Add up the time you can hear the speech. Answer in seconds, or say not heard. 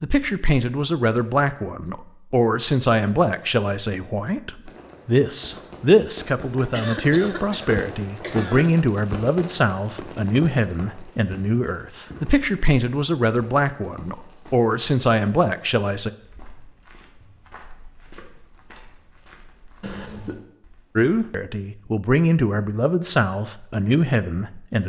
20 s.